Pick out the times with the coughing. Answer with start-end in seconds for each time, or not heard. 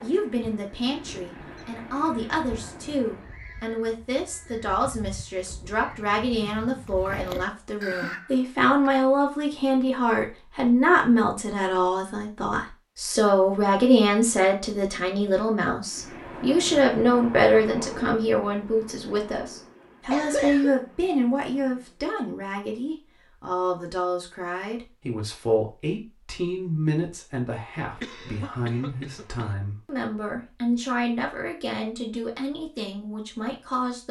7.2-8.1, 20.1-20.8, 27.8-29.6.